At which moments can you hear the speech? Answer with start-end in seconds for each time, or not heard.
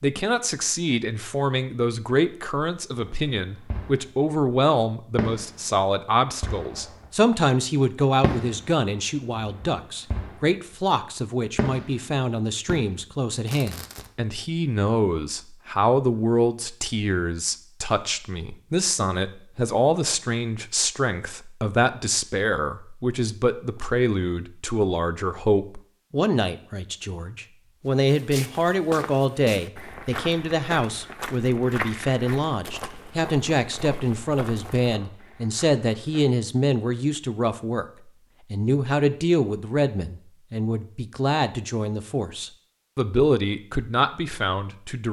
0.0-45.0.